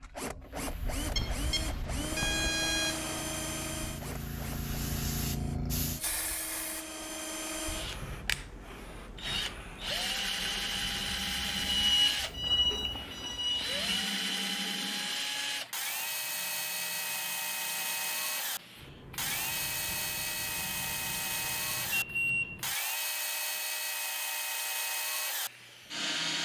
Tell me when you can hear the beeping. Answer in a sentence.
You can hear the beeping from 1.1 to 3.1 s, from 11.6 to 14.1 s and from 21.9 to 22.6 s.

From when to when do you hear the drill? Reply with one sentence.
The drill can be heard from 0.0 to 26.3 s.